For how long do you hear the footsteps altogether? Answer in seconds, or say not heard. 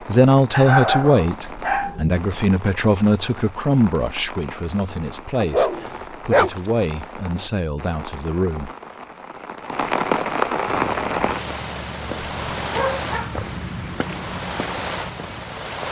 5 s.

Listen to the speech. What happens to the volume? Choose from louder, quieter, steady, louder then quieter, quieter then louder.
quieter.